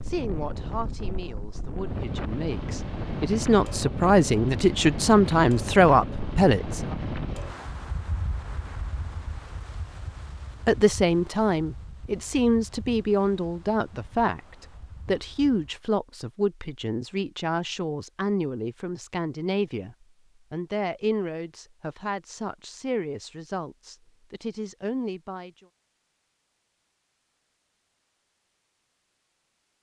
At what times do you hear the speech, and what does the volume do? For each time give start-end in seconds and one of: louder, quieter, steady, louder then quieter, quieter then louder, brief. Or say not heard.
0.1-6.8 louder
10.7-25.6 quieter.